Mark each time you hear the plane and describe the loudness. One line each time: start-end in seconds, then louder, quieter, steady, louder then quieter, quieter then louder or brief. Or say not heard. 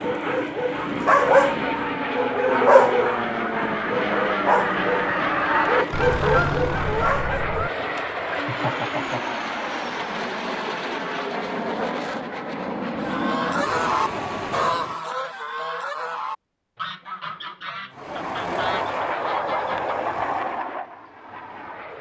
0.0-15.1 steady
17.9-21.9 quieter.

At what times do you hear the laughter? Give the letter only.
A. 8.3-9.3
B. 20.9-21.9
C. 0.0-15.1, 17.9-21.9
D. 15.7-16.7
A.